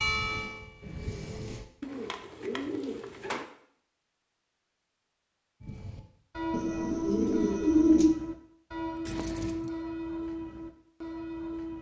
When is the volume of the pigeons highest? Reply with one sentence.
The loudest moment of the pigeons is at 8 seconds.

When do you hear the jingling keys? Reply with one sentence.
The jingling keys can be heard from 0.8 to 1.5 s and from 9.1 to 9.7 s.